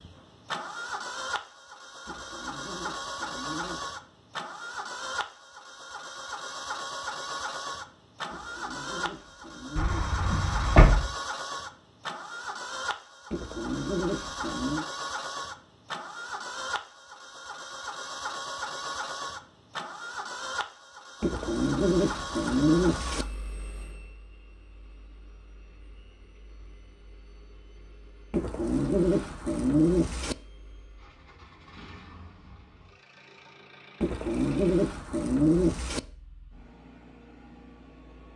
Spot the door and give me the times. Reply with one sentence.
You can hear the door from 9.8 to 11.1 s.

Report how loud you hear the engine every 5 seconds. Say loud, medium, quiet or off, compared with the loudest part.
loud, loud, loud, loud, loud, quiet, quiet, quiet.